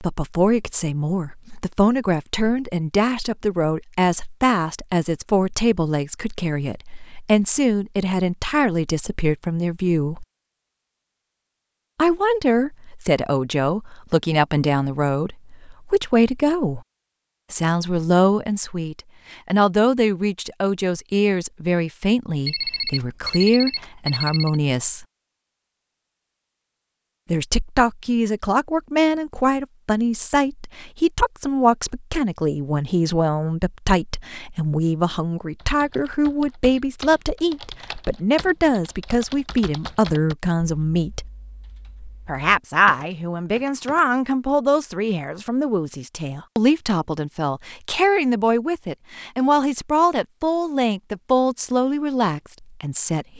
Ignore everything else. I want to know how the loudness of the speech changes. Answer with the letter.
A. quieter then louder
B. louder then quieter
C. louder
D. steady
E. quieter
D.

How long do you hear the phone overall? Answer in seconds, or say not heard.
2 s.